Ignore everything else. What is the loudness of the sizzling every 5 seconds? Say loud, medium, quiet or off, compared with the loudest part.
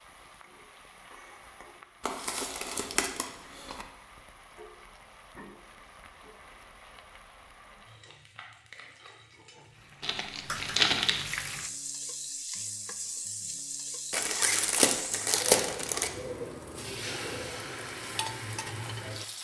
quiet, quiet, loud, loud.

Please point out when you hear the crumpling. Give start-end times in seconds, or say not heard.
2.0-3.9, 10.0-11.2, 14.1-16.1.